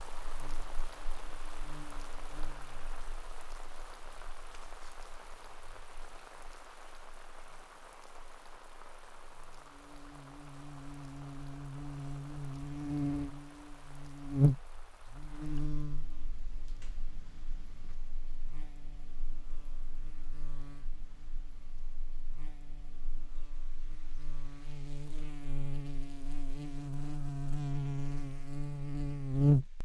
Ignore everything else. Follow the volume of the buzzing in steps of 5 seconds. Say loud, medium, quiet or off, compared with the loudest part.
quiet, quiet, loud, quiet, quiet, loud.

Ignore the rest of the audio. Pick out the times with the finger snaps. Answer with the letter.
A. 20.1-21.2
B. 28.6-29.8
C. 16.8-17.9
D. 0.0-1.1
C.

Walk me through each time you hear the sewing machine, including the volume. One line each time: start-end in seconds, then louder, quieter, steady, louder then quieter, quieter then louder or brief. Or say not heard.
not heard.